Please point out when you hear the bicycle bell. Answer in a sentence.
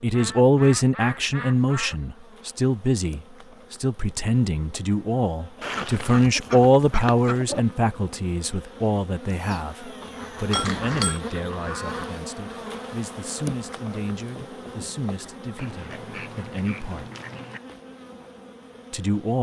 You can hear the bicycle bell from 10.5 to 11.2 s.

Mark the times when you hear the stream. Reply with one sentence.
The stream can't be heard in this clip.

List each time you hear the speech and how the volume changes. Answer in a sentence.
You can hear the speech from 0.0 to 17.1 s, getting quieter; and briefly from 18.9 to 19.3 s.